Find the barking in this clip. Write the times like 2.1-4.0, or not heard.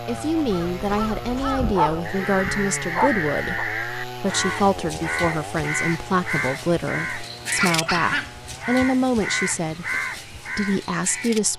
1.7-3.6, 7.0-8.3.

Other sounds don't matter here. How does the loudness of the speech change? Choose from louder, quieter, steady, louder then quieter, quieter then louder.
steady.